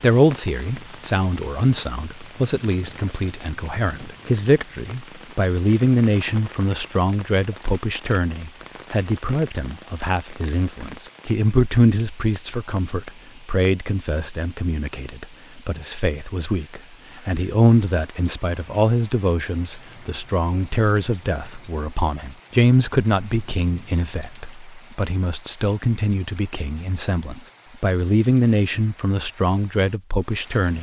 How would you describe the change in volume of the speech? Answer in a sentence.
The loudness of the speech stays about the same.